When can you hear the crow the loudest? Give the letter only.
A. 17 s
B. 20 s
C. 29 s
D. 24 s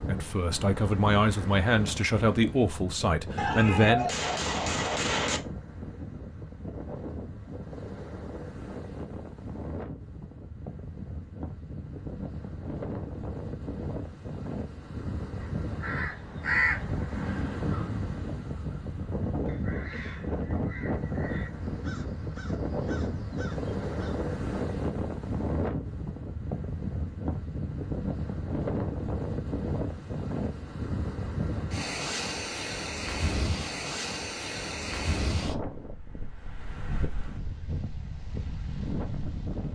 A.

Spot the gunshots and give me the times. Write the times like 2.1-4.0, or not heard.
3.4-5.4.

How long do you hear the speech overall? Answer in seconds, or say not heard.
4 s.